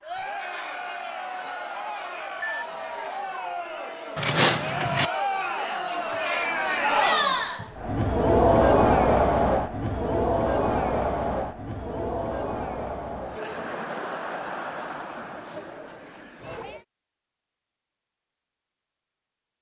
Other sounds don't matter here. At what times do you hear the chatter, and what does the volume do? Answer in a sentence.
The chatter can be heard from 0.0 to 16.9 s, getting louder then quieter.